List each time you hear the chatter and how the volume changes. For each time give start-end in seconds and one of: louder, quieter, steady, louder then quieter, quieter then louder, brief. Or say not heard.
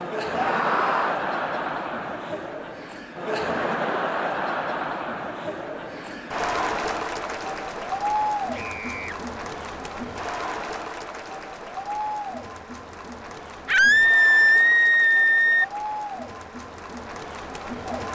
0.0-18.1 quieter.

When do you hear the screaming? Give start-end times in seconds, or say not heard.
0.3-1.2, 8.5-9.2, 13.7-15.7.